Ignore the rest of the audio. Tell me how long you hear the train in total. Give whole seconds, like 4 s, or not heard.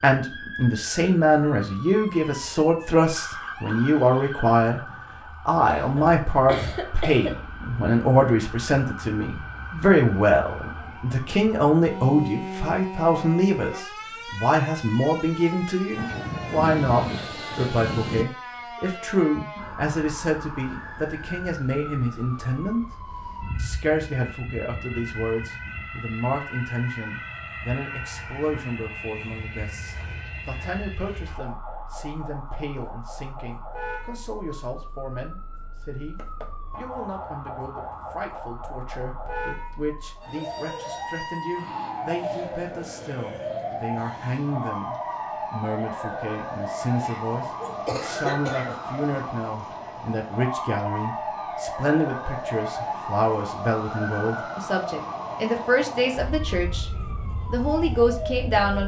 2 s.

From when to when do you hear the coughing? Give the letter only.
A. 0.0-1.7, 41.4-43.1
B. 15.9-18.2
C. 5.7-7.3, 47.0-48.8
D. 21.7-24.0
C.